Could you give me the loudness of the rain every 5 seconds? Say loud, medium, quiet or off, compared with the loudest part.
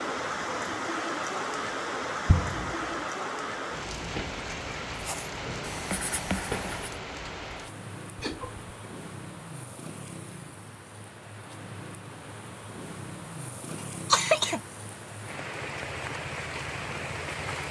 loud, medium, medium, loud.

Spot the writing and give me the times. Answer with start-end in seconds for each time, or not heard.
5.0-7.0.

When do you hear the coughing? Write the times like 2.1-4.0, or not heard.
2.2-2.8, 8.2-8.7, 14.1-14.6.